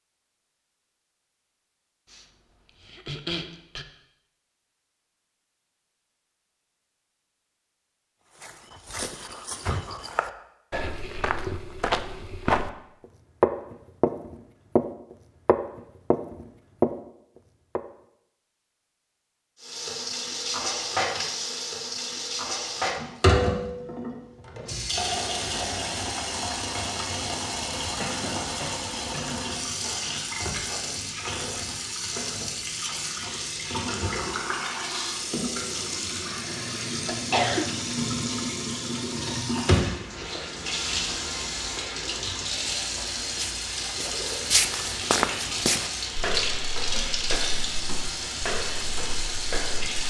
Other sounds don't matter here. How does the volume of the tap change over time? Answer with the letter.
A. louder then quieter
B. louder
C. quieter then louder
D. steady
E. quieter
D.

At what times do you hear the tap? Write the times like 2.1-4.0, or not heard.
19.6-50.0.